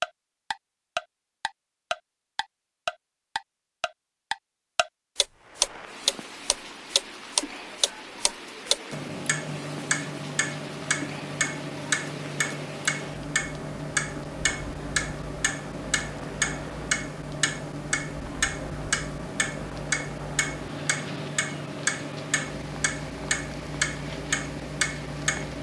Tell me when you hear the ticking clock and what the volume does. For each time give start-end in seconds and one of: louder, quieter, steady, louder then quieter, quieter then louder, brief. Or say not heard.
0.0-25.5 steady.